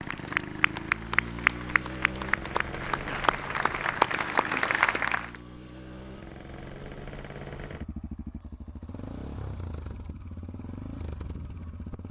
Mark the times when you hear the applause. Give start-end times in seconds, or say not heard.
0.0-5.2.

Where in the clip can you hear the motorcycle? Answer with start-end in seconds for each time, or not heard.
0.0-12.0.